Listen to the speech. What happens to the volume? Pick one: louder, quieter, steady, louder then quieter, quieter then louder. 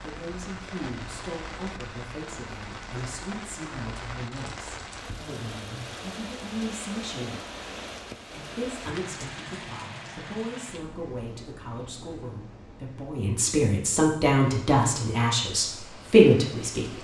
louder.